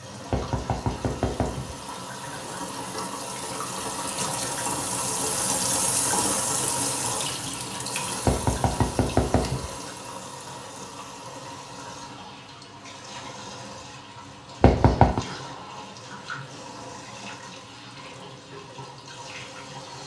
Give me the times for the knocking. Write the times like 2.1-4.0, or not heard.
0.3-1.8, 8.2-9.8, 14.6-15.2.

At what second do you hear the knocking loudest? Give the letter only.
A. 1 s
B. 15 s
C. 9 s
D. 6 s
B.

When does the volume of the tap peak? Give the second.
6 s.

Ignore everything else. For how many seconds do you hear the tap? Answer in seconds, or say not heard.
20 s.